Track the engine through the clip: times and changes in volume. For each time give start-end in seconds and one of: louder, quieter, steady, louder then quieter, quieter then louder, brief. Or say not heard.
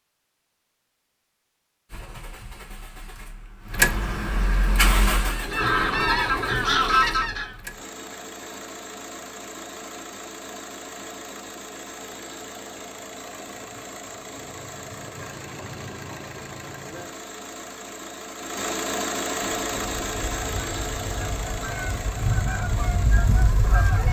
1.9-24.0 quieter then louder.